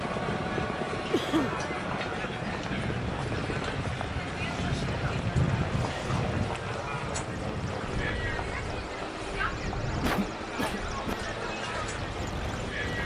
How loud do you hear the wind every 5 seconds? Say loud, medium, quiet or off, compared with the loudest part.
loud, loud, medium.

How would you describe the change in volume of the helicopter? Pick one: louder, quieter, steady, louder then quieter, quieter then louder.
steady.